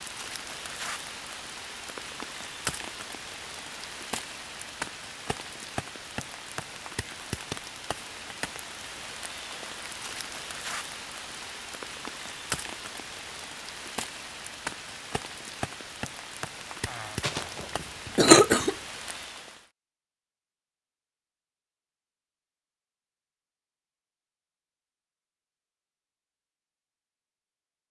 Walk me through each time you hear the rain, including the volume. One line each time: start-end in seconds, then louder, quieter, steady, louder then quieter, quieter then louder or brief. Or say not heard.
0.0-19.6 steady.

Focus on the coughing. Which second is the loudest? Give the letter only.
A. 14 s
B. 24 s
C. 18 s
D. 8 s
C.